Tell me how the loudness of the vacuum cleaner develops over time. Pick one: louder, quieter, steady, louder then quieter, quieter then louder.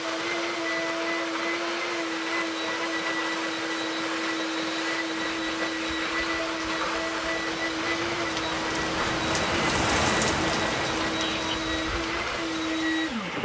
steady.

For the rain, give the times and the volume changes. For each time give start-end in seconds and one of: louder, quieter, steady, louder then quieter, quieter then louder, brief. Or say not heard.
5.3-13.4 louder then quieter.